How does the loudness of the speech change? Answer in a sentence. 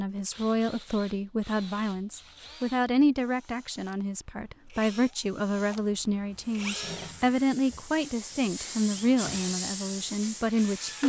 The volume of the speech stays about the same.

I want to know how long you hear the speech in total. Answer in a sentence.
You can hear the speech for 11 seconds altogether.